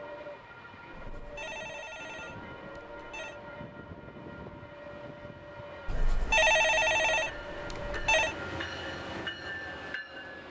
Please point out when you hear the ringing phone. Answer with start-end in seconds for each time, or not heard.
0.9-3.4, 5.8-8.3.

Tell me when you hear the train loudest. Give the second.
9 s.